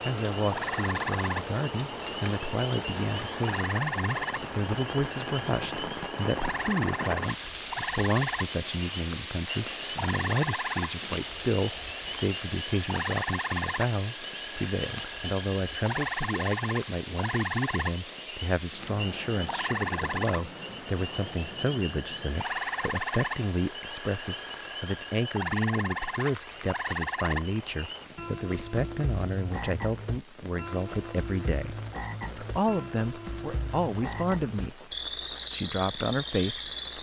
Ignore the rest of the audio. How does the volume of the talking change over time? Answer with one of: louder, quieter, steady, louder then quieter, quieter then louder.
steady.